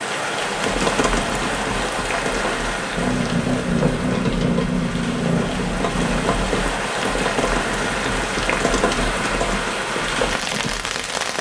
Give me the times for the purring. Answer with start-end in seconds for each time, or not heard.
3.0-6.7.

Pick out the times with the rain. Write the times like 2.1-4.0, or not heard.
0.0-11.3.